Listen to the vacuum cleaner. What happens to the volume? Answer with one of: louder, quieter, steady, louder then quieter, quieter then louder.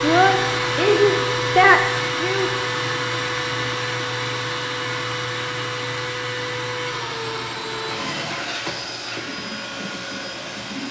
quieter.